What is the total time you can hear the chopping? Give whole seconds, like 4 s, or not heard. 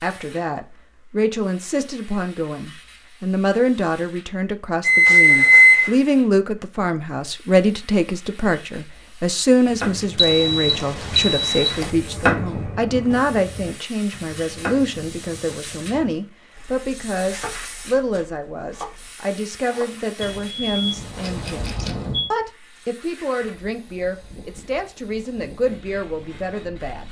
10 s.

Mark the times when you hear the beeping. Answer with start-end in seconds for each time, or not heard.
4.8-5.9, 10.2-11.9, 20.2-22.3.